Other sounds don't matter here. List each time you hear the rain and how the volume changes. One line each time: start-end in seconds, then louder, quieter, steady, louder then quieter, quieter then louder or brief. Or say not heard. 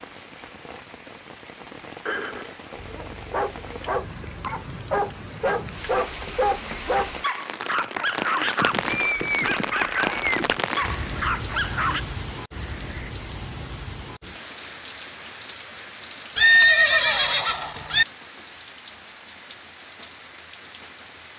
0.0-21.3 louder then quieter.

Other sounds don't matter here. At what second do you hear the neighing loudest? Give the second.
17 s.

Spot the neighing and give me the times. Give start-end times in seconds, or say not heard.
2.0-2.5, 8.6-10.6, 16.4-18.1.